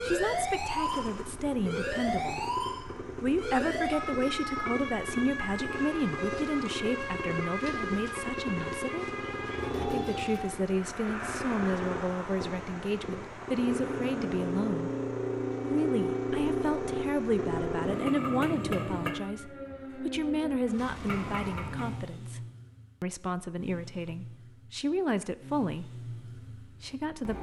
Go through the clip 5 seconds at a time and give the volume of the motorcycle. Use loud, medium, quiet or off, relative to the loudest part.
medium, medium, loud, loud, medium, quiet.